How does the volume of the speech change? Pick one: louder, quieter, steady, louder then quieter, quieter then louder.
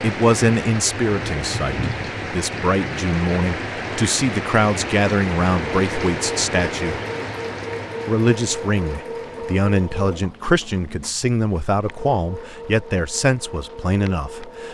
steady.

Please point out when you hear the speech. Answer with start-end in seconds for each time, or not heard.
0.0-7.0, 8.1-14.6.